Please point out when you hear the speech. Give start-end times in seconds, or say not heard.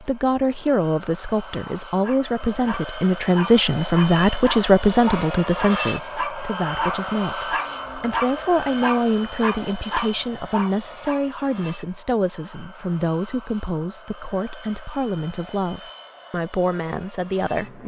0.0-17.8.